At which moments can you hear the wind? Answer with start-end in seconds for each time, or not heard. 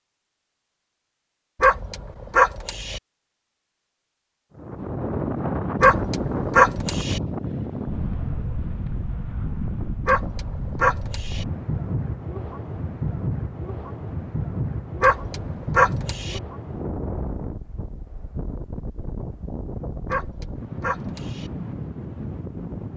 4.5-22.9.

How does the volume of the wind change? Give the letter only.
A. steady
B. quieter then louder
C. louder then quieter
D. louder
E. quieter
E.